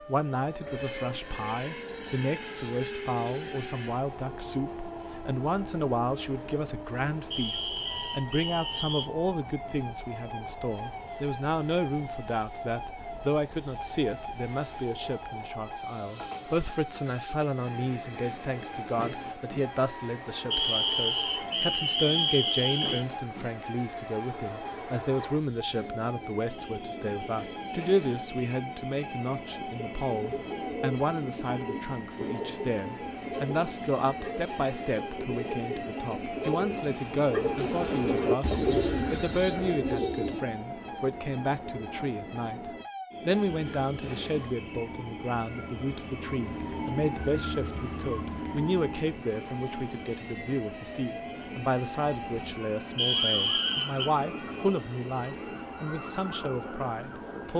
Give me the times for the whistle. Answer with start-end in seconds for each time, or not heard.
7.3-9.1, 20.5-23.1, 53.0-54.1.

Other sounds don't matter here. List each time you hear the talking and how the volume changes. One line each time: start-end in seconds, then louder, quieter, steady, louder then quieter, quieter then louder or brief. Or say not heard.
0.1-57.5 steady.